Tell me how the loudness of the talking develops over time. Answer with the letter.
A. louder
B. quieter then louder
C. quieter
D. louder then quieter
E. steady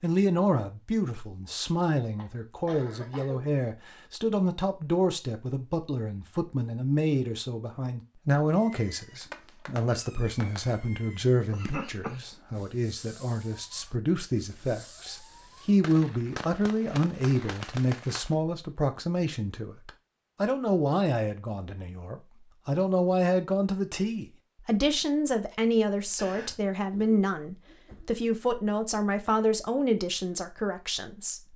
E.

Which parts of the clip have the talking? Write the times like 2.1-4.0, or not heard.
0.0-31.5.